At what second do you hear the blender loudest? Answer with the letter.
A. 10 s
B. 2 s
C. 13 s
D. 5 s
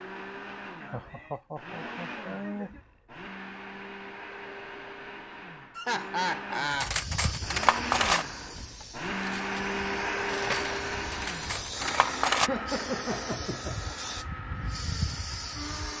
A.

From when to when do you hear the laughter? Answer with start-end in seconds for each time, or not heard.
0.8-2.8, 5.8-7.0, 12.4-13.8.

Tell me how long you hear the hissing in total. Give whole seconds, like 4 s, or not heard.
9 s.